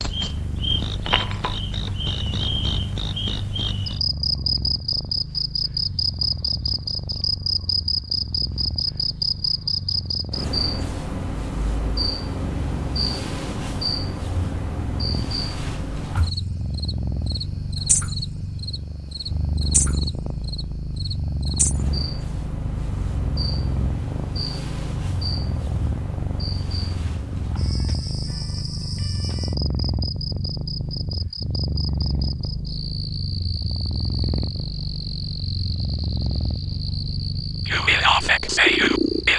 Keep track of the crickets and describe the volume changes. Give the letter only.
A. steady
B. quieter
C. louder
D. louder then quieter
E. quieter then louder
B.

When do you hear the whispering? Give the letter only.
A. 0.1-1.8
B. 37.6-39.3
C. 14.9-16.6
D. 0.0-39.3
B.